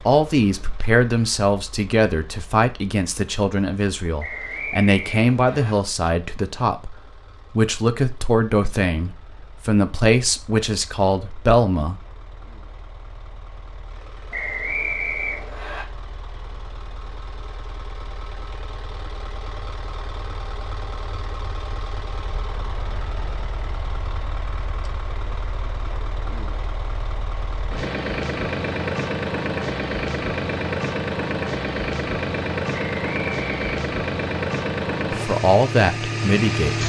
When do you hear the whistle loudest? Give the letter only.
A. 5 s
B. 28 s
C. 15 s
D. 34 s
C.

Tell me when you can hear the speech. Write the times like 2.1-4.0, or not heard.
0.1-12.0, 35.1-36.8.